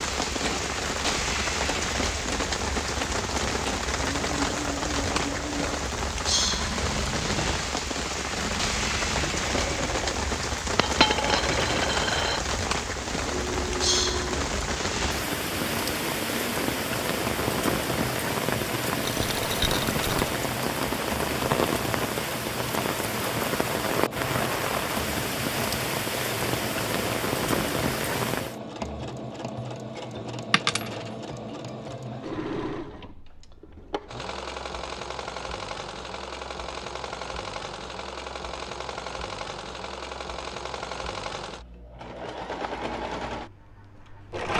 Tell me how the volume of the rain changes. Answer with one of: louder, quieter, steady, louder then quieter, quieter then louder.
steady.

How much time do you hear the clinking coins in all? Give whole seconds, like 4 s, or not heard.
3 s.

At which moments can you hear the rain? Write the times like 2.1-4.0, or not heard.
0.0-28.6.